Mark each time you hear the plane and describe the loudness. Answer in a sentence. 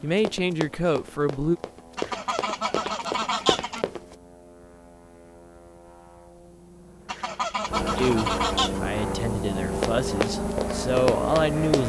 The plane can be heard from 0.0 to 11.8 s, getting louder.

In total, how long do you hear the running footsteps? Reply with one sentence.
You can hear the running footsteps for 6 seconds altogether.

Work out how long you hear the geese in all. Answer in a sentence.
You can hear the geese for 4 seconds altogether.